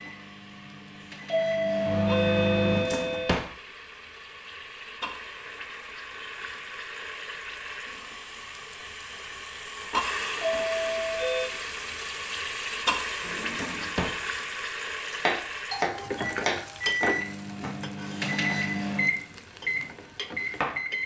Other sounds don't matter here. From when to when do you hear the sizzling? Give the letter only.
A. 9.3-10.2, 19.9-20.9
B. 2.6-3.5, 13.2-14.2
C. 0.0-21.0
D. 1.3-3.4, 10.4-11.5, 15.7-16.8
C.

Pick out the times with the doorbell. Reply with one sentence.
The doorbell can be heard from 1.3 to 3.4 s, from 10.4 to 11.5 s and from 15.7 to 16.8 s.